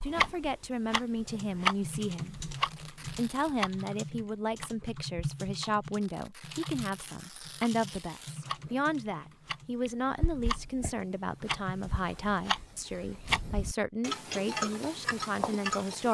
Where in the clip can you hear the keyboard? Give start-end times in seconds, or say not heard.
1.0-12.4.